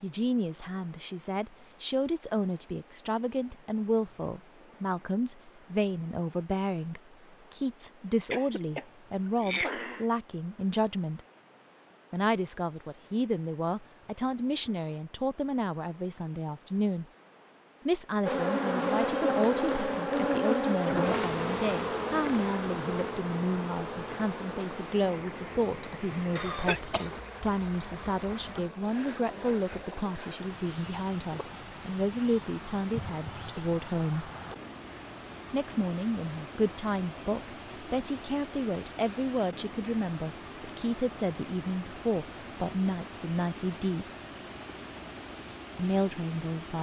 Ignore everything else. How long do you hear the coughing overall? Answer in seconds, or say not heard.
3 s.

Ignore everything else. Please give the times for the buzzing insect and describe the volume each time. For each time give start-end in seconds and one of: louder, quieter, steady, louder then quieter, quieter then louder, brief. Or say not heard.
18.2-29.6 quieter.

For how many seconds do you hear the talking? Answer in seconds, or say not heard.
42 s.